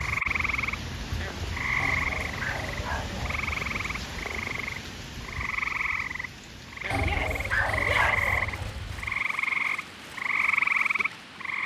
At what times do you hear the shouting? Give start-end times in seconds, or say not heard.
7.0-8.3.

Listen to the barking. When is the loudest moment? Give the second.
8 s.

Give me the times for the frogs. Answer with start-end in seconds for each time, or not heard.
0.0-11.6.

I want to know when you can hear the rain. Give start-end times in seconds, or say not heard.
0.0-11.6.